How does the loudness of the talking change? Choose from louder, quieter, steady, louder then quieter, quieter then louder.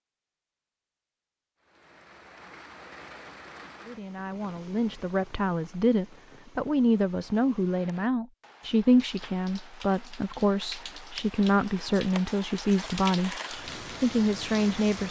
steady.